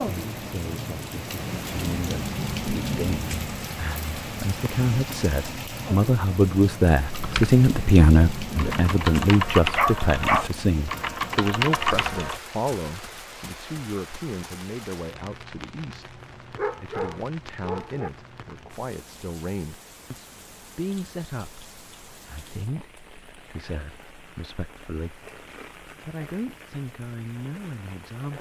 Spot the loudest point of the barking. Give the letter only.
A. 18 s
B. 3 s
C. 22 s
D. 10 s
D.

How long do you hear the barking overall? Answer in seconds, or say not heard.
3 s.